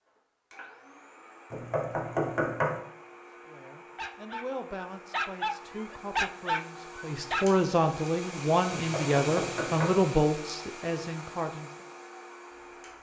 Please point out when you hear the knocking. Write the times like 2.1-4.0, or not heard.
1.5-2.8, 8.7-10.0.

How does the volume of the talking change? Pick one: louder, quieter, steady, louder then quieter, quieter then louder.
louder.